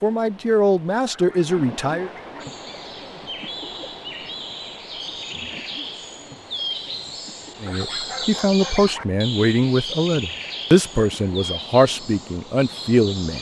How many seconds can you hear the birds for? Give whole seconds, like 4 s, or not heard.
11 s.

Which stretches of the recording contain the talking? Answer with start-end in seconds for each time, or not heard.
0.0-2.1, 7.6-13.3.